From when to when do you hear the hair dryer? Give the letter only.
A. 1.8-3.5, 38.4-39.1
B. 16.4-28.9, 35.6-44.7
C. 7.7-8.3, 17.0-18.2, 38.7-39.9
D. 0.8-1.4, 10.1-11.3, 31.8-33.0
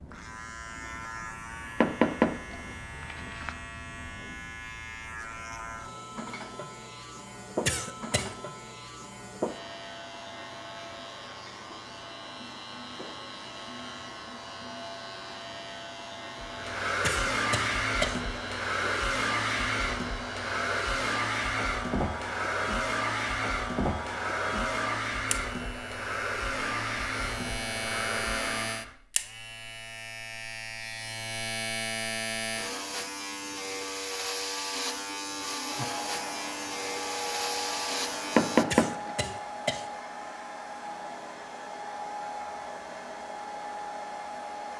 B.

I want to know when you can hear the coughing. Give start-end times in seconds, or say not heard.
7.7-8.3, 17.0-18.2, 38.7-39.9.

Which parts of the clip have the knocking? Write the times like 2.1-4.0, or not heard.
1.8-3.5, 38.4-39.1.